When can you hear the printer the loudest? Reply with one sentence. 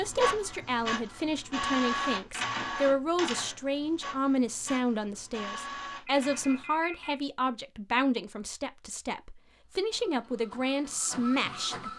The loudest moment of the printer is at 2 seconds.